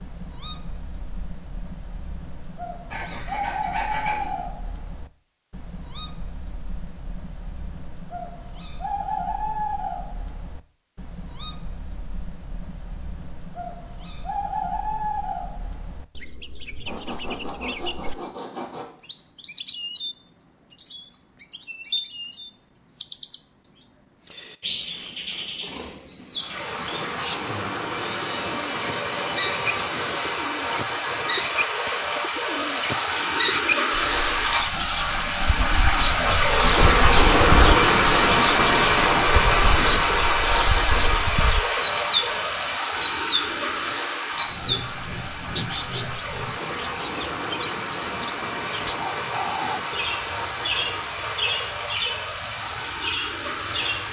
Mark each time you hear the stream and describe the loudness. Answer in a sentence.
You can hear the stream from 26.4 to 54.0 s, getting louder then quieter.